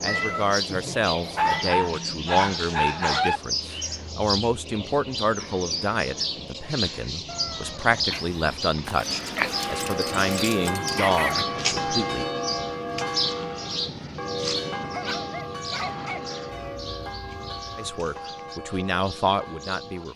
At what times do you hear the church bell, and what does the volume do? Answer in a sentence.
The church bell can be heard from 9.5 to 20.1 s, getting quieter.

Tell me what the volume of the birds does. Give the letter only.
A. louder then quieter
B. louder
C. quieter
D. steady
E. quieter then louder
C.